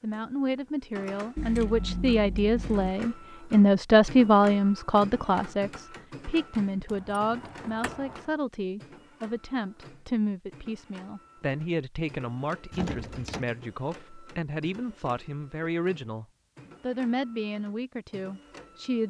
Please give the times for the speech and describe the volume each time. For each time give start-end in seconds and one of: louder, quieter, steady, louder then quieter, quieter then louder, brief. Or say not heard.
0.0-19.0 quieter.